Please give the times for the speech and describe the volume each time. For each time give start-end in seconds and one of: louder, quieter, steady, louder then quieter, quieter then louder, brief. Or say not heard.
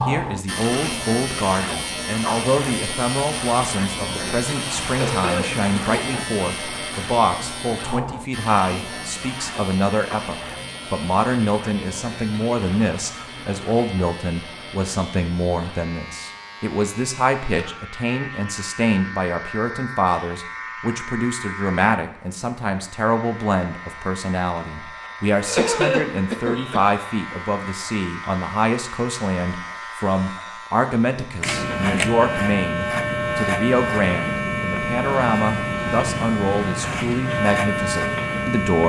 0.0-38.8 steady.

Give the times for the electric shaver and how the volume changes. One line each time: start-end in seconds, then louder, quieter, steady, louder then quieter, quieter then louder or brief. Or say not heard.
0.0-38.8 quieter then louder.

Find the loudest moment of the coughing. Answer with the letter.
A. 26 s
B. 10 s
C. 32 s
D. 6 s
A.